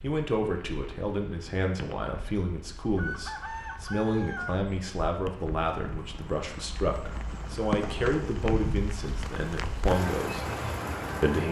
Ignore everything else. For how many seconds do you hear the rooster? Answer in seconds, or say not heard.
2 s.